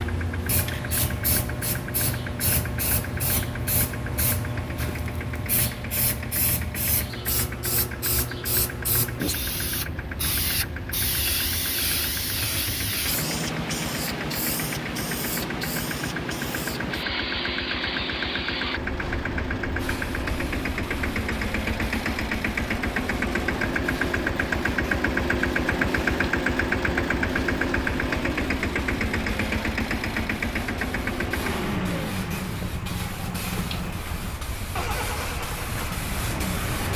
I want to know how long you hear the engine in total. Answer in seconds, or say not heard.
37 s.